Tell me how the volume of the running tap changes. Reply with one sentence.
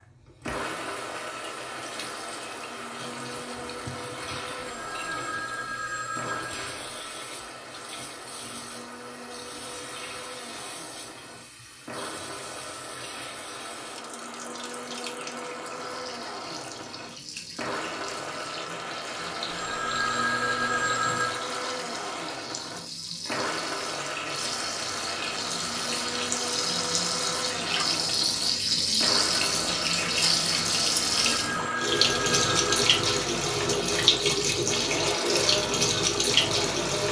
The loudness of the running tap goes up.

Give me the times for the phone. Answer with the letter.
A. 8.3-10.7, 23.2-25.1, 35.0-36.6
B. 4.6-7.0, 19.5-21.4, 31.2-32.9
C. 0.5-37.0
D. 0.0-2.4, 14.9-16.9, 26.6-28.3
B.